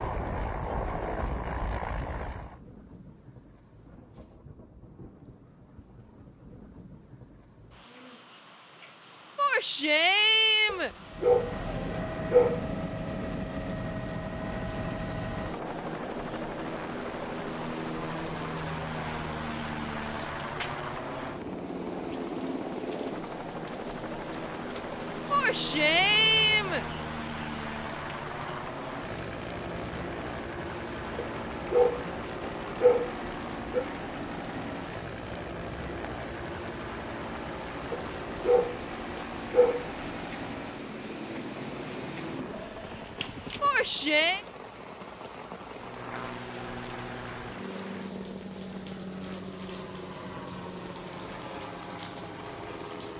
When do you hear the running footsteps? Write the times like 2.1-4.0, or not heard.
not heard.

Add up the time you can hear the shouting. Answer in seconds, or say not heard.
4 s.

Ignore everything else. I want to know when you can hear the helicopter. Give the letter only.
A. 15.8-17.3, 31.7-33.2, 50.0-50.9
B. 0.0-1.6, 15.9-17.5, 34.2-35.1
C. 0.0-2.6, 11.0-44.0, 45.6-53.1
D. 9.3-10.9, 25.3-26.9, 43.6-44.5
C.